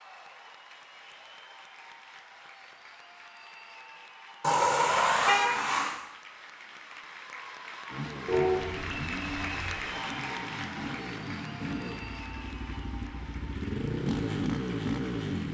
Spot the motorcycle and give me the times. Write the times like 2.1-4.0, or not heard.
7.8-15.4.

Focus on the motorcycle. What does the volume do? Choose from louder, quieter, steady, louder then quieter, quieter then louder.
louder.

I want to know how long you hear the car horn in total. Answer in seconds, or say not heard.
3 s.